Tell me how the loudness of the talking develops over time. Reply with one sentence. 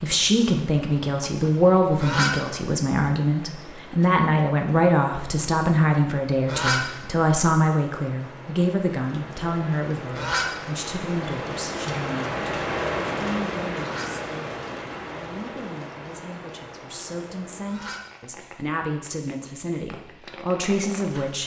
The volume of the talking goes down, then up.